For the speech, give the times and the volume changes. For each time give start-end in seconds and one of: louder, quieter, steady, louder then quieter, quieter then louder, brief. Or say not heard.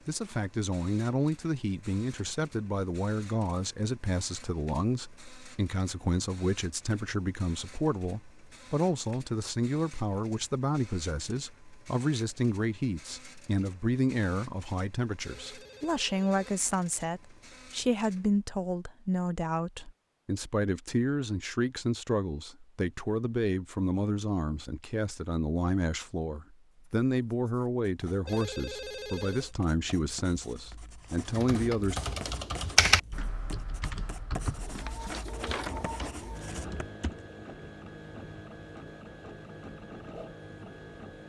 0.1-32.0 steady.